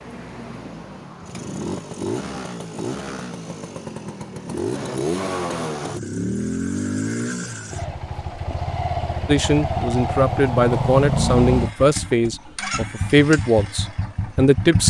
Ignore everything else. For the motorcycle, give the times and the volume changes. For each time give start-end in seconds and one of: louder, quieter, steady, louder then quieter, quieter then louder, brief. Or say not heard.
0.0-14.8 louder then quieter.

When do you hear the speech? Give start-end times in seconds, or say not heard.
9.2-14.8.